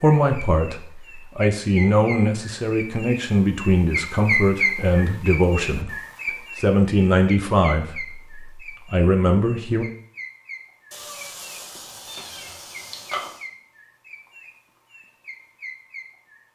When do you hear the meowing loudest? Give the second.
13 s.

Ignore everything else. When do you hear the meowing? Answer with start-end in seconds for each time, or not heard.
10.9-13.4.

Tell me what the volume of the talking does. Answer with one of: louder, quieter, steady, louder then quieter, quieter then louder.
steady.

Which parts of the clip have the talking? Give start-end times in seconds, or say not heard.
0.0-6.0, 6.5-9.8.